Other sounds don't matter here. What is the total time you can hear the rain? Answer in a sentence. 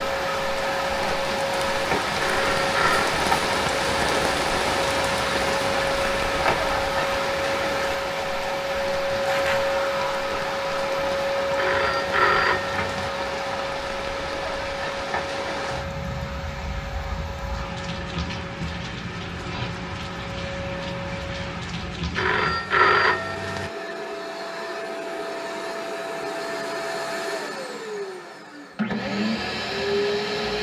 You can hear the rain for 23 seconds altogether.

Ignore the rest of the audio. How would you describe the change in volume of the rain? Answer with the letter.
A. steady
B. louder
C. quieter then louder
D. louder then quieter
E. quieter
E.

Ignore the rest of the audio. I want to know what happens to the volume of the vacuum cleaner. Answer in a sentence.
The volume of the vacuum cleaner goes down, then up.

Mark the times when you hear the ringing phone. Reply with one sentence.
You can hear the ringing phone from 2.2 to 3.2 s, from 11.6 to 13.1 s and from 22.1 to 23.7 s.